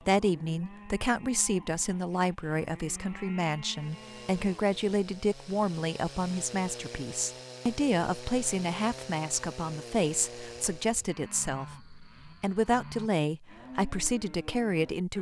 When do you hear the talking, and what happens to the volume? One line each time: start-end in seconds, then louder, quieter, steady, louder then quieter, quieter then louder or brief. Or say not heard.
0.1-15.1 steady.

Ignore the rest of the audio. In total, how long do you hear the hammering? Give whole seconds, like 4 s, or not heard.
not heard.